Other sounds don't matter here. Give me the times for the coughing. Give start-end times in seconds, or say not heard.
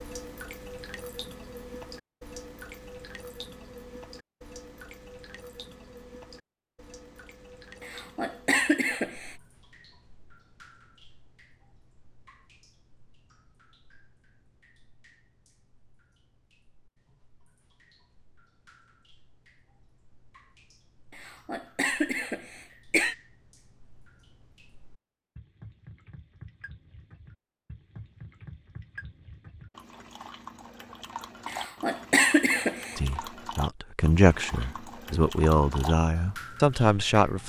7.8-9.3, 21.1-23.1, 31.4-33.0.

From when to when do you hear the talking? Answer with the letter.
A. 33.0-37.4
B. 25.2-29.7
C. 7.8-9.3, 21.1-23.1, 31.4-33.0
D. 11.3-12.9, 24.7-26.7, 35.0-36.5
A.